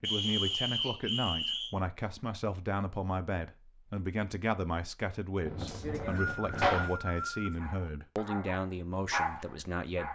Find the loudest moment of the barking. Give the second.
9 s.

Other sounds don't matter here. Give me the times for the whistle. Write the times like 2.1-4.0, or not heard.
0.0-1.7, 5.7-7.5.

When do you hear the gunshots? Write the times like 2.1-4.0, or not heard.
5.5-6.9.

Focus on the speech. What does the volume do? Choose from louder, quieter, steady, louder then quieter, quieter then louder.
steady.